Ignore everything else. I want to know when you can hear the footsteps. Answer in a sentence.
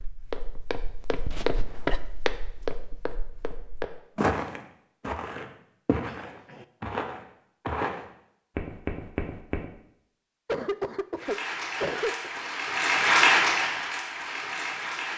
The footsteps can be heard from 0.0 to 9.7 s.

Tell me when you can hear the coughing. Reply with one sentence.
You can hear the coughing from 1.3 to 2.0 s, from 6.0 to 6.7 s and from 10.4 to 12.3 s.